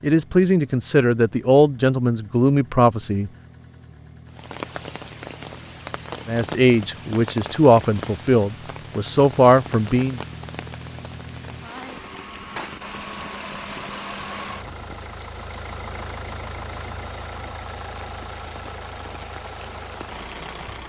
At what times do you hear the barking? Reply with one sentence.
You can't hear the barking here.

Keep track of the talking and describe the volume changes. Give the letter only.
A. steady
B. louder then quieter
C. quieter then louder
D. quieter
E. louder
A.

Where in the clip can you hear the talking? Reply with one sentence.
The talking can be heard from 0.0 to 3.3 s and from 6.2 to 10.2 s.